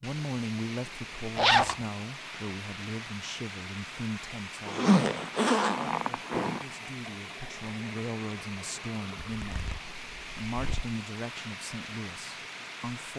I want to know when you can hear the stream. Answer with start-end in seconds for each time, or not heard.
0.0-13.1.